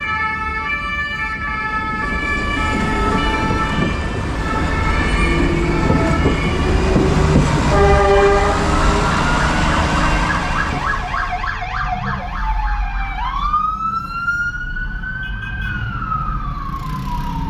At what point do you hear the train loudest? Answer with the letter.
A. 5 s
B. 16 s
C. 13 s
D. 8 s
D.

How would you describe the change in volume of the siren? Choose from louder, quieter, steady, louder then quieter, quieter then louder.
steady.